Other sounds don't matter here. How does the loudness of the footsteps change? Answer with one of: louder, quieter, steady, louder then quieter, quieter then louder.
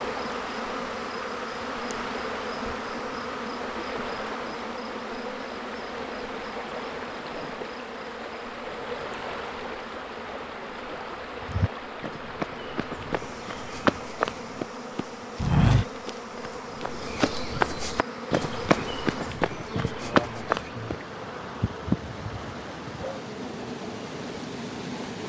louder.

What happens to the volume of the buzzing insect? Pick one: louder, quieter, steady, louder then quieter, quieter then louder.
quieter then louder.